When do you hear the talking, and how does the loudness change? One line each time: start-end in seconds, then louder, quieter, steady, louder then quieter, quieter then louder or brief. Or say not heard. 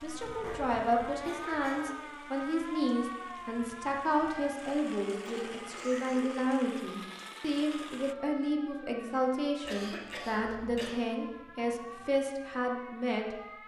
0.0-13.3 steady.